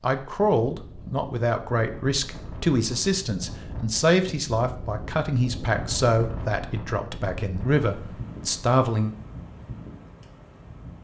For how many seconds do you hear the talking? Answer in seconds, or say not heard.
9 s.